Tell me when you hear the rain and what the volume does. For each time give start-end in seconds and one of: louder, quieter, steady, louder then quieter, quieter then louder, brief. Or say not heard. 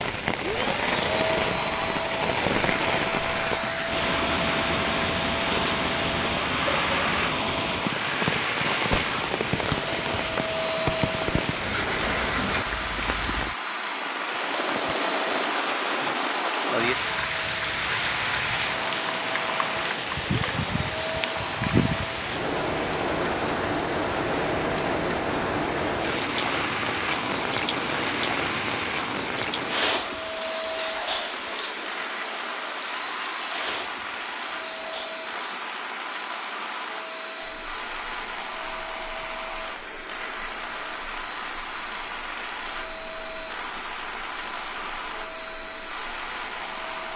0.0-47.1 quieter.